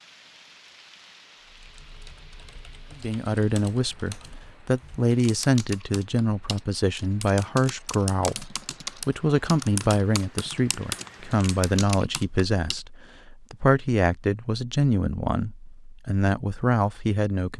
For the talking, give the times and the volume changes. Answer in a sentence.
The talking can be heard from 3.0 to 17.5 s, at a steady volume.